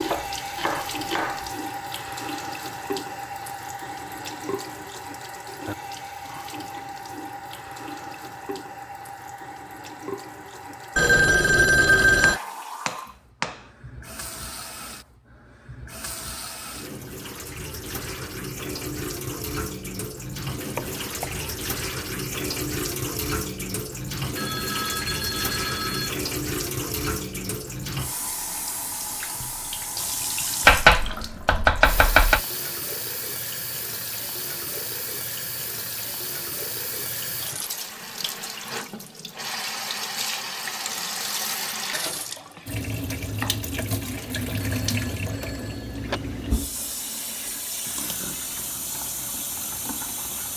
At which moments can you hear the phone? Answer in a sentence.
The phone can be heard from 10.9 to 12.4 s, from 24.4 to 26.1 s and from 44.1 to 46.2 s.